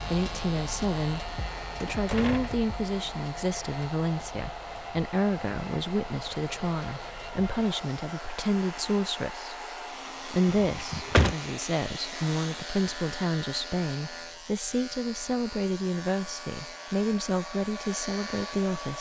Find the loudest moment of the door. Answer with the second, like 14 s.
11 s.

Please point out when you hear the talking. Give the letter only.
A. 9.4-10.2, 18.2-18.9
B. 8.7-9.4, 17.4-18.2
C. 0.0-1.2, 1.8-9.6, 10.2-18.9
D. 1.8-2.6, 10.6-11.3
C.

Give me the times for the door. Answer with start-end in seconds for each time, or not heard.
1.8-2.6, 10.6-11.3.